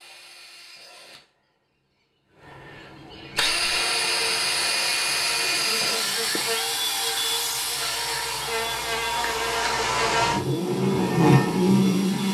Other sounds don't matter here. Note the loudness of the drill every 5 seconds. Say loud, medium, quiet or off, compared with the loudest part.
loud, loud, quiet.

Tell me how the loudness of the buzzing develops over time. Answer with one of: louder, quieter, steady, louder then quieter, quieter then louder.
louder.